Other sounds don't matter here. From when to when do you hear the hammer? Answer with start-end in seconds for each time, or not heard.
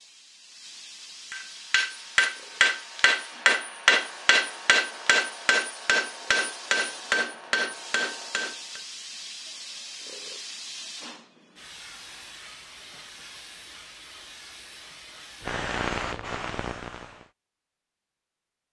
1.3-8.8.